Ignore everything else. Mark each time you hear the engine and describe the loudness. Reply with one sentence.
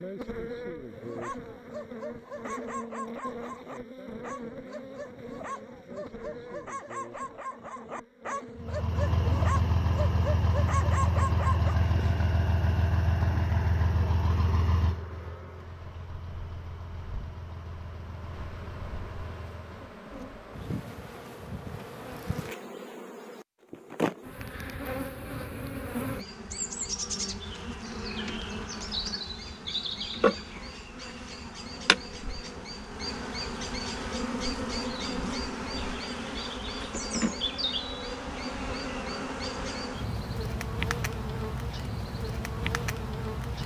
The engine can be heard from 8.6 to 19.9 s, getting quieter.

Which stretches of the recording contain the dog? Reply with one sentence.
The dog can be heard from 0.9 to 11.8 s.